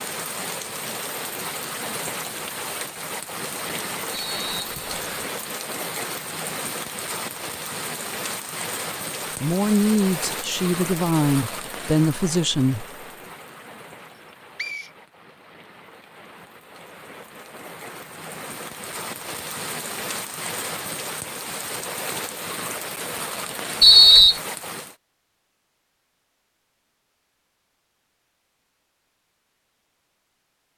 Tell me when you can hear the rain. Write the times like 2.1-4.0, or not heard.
0.0-24.9.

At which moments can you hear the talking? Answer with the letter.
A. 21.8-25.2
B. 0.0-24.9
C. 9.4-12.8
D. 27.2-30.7
C.